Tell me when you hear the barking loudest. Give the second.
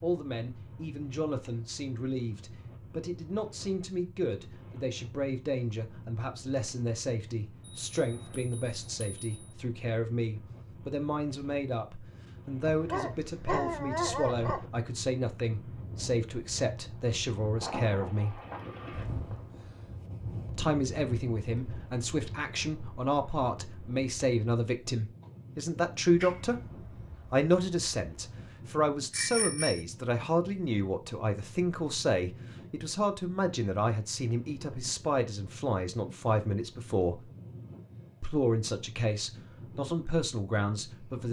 14 s.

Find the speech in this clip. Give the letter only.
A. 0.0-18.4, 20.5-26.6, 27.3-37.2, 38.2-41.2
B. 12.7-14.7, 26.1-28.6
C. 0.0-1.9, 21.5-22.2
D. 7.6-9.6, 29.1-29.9
A.